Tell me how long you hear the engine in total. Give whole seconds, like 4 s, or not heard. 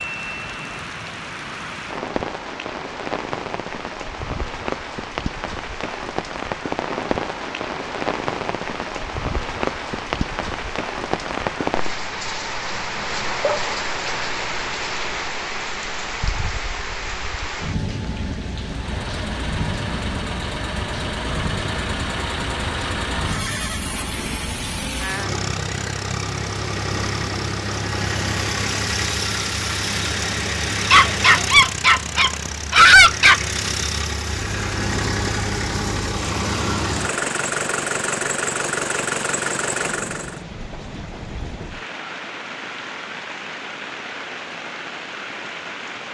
22 s.